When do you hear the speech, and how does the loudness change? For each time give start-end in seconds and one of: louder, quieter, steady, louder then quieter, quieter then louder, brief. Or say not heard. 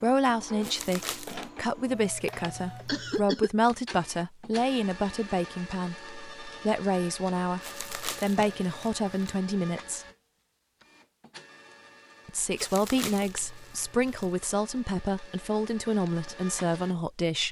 0.0-10.1 steady
12.2-17.4 steady.